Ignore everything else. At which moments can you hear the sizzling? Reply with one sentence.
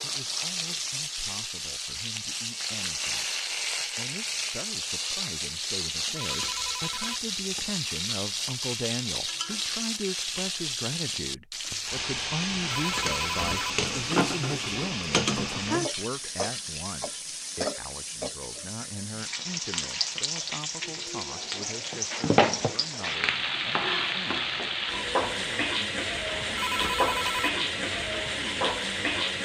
You can hear the sizzling from 0.0 to 29.4 s.